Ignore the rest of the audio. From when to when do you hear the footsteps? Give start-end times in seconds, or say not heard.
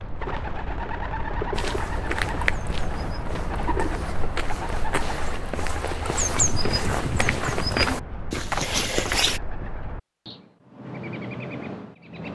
1.5-9.4.